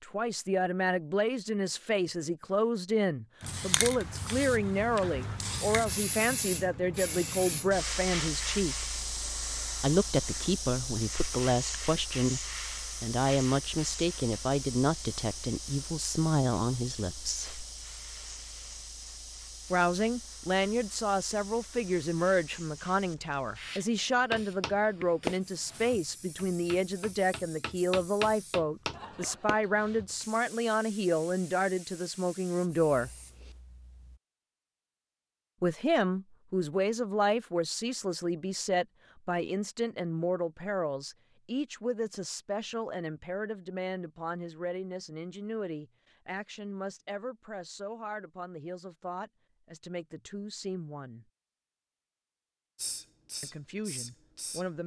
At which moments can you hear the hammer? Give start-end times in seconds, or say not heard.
24.3-30.1.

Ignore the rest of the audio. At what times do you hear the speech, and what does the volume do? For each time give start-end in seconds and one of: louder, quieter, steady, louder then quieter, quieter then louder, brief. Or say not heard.
0.0-8.8 steady
9.8-17.6 steady
19.7-33.1 steady
35.6-51.2 quieter
53.4-54.8 brief.